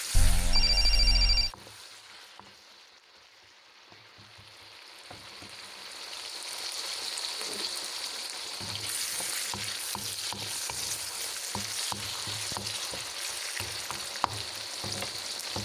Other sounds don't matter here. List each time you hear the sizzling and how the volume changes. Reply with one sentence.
You can hear the sizzling from 0.0 to 15.6 s, getting louder.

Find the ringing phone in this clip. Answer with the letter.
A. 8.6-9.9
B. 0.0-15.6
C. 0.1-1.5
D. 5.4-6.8
C.